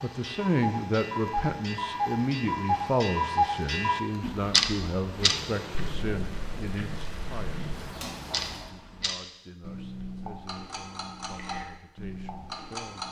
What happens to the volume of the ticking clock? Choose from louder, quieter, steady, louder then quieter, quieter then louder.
louder then quieter.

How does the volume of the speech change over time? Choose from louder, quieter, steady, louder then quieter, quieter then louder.
quieter.